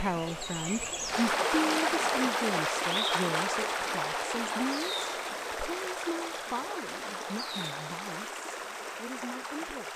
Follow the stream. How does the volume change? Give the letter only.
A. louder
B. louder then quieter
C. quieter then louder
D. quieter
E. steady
D.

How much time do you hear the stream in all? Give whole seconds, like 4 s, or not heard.
10 s.